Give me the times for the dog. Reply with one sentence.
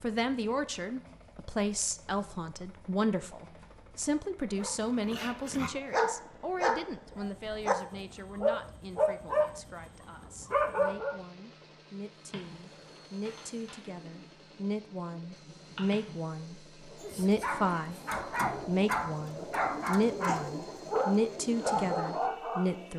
You can hear the dog from 4.5 to 11.2 s and from 17.0 to 22.8 s.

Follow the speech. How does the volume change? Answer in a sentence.
The loudness of the speech goes down, then up.